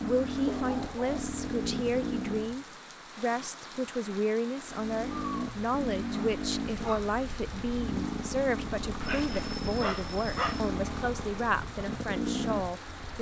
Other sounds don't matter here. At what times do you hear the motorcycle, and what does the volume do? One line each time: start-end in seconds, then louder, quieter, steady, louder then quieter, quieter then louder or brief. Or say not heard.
0.0-2.6 brief
4.6-13.1 steady.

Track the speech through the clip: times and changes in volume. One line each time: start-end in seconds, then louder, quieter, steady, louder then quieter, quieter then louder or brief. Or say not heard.
0.0-13.1 steady.